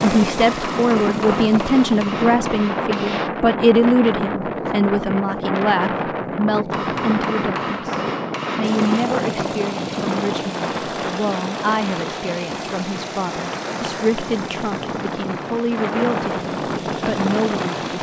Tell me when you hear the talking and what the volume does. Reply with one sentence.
You can hear the talking from 0.0 to 17.9 s, getting quieter.